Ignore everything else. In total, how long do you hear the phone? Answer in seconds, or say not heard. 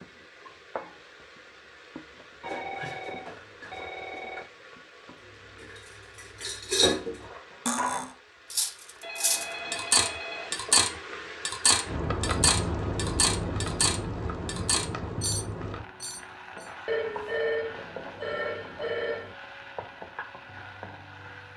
6 s.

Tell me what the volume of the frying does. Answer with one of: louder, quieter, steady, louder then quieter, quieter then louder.
louder then quieter.